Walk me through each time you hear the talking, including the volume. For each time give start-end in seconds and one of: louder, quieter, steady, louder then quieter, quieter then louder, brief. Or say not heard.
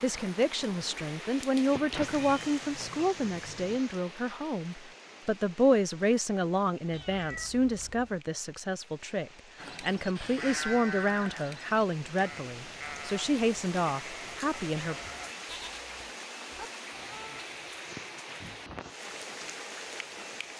0.0-14.9 steady.